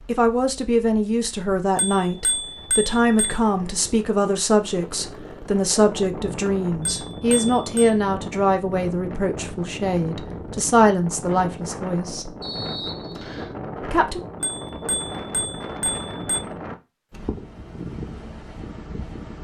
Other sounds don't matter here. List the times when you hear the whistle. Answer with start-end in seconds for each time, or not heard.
12.4-13.6.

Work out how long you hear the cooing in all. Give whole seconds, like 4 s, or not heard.
not heard.